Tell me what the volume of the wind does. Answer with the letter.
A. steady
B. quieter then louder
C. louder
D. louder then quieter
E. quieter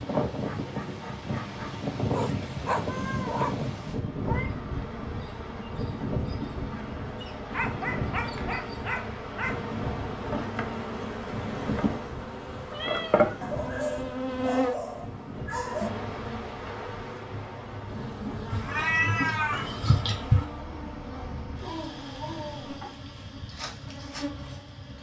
E.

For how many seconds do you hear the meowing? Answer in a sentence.
You can hear the meowing for 4 seconds altogether.